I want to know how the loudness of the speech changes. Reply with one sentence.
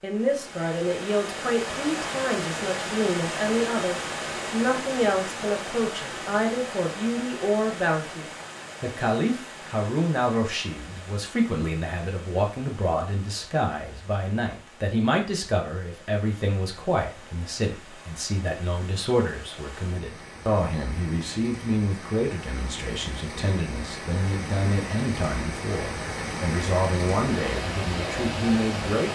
The loudness of the speech stays about the same.